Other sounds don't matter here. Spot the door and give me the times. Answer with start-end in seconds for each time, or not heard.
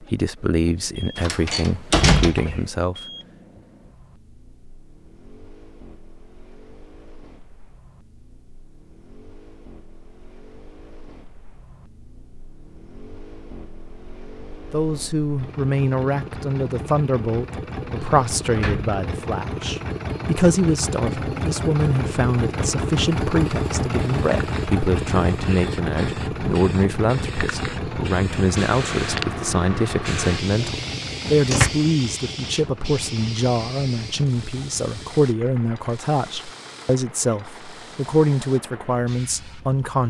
1.1-2.6, 18.6-19.0, 30.2-31.7.